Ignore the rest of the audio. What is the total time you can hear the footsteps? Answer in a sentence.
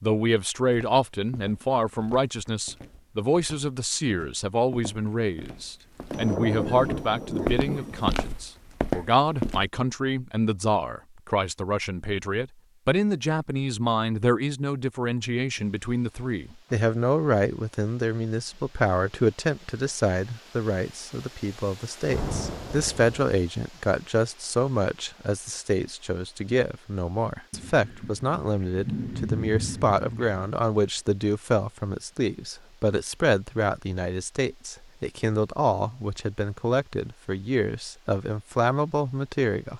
You can hear the footsteps for 9 seconds altogether.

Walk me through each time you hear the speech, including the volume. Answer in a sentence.
You can hear the speech from 0.0 to 39.7 s, at a steady volume.